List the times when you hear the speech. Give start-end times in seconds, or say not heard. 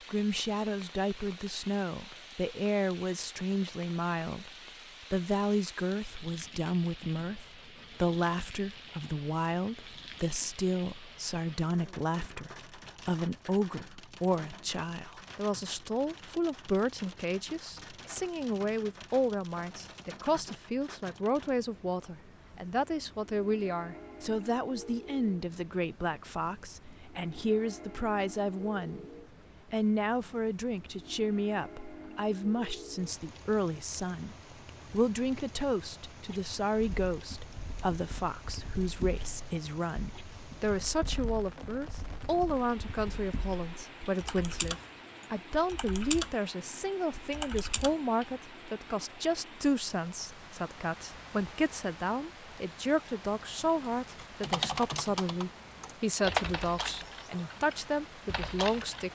0.1-4.5, 5.1-29.1, 29.7-59.1.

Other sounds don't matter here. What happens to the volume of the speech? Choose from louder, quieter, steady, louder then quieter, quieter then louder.
steady.